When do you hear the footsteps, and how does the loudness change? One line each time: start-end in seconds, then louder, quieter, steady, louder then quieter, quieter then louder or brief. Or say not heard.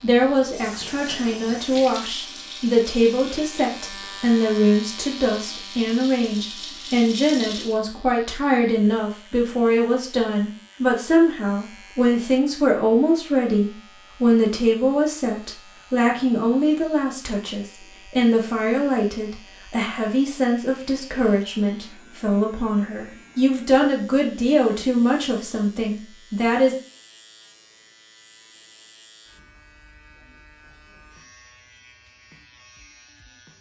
not heard.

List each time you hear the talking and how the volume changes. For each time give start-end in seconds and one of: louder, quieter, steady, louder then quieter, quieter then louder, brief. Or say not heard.
0.0-26.8 steady.